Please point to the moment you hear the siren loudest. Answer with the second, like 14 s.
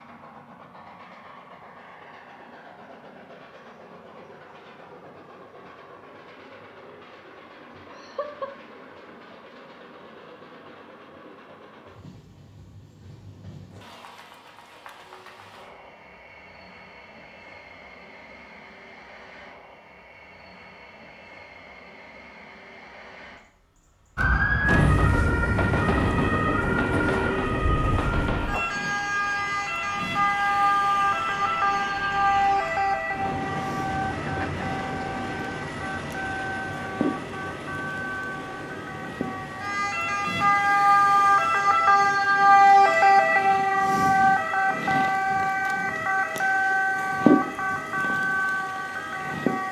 43 s.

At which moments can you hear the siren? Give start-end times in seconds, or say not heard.
24.1-49.6.